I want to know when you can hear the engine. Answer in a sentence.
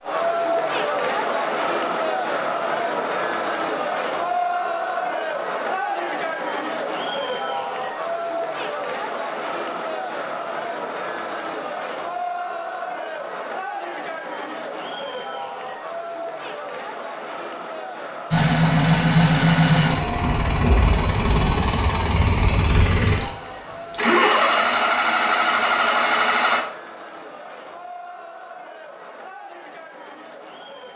You can hear the engine from 18.3 to 26.6 s.